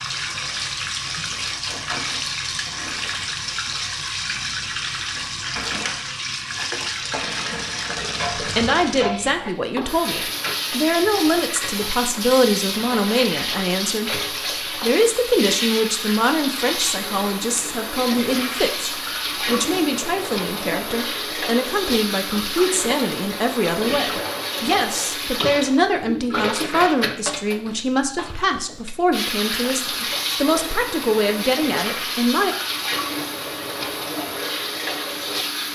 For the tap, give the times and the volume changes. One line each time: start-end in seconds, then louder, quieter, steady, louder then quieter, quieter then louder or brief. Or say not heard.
0.0-35.7 steady.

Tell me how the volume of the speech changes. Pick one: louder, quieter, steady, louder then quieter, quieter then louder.
steady.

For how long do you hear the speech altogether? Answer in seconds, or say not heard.
24 s.